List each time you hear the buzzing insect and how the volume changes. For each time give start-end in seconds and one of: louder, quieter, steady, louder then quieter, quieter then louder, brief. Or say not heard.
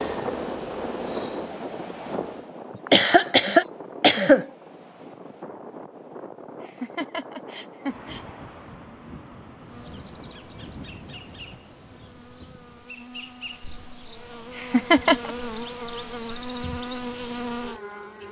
0.0-2.5 brief
9.7-18.2 louder.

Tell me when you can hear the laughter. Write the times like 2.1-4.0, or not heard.
2.9-4.5, 6.2-8.2, 14.2-15.3.